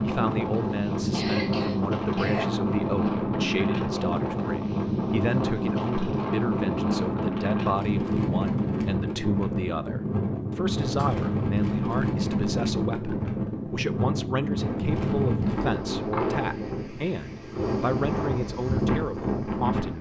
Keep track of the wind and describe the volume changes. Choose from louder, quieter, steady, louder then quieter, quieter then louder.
steady.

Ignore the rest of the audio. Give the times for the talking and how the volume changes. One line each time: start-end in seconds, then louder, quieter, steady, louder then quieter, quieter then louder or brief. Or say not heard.
0.0-19.9 steady.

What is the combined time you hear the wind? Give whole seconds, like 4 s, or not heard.
20 s.